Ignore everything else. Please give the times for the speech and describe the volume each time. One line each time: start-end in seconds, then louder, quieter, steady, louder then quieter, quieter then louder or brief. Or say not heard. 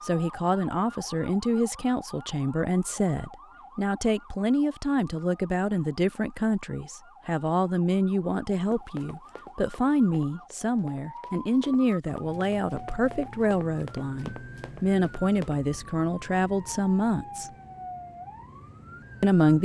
0.0-17.5 steady
19.2-19.6 brief.